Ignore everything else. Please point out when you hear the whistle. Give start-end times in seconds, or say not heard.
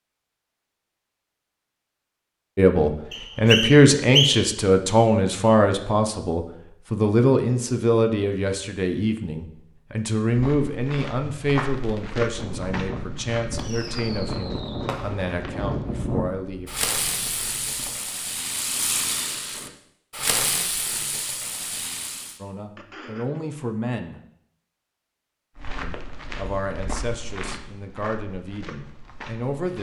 3.1-4.5.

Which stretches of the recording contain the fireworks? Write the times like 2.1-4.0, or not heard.
11.6-22.4.